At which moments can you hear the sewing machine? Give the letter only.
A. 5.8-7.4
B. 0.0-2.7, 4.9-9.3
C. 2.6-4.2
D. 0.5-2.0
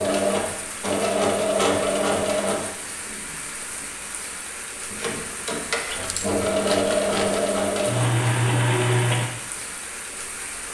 B.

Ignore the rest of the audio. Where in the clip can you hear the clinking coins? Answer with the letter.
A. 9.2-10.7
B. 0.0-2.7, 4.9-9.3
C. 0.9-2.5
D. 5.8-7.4
D.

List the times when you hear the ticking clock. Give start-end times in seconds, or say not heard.
not heard.